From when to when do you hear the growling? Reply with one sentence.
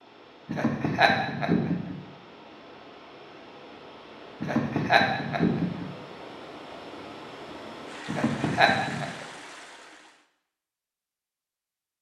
The growling can't be heard in this clip.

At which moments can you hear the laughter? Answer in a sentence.
The laughter can be heard from 0.5 to 1.9 s, from 4.4 to 5.9 s and from 8.1 to 9.1 s.